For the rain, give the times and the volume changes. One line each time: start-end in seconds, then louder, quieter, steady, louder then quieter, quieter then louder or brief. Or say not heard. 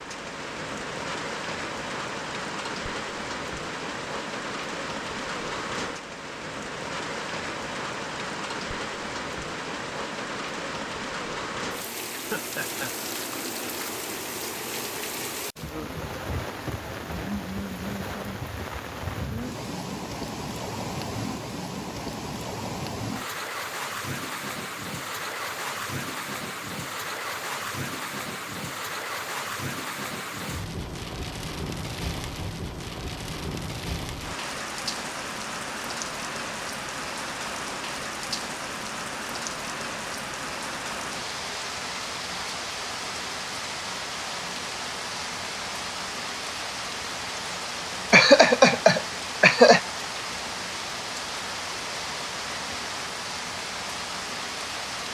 0.0-55.0 steady.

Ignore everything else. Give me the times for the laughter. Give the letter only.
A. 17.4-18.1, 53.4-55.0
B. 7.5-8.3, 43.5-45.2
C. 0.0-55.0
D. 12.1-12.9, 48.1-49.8
D.